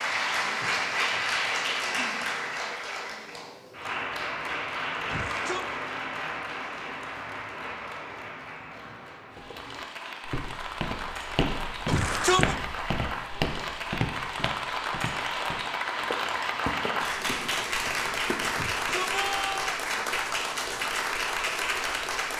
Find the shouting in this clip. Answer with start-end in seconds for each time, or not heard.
5.0-5.7, 11.8-12.6, 18.5-19.6.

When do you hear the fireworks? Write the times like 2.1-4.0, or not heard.
not heard.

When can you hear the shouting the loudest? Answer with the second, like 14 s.
12 s.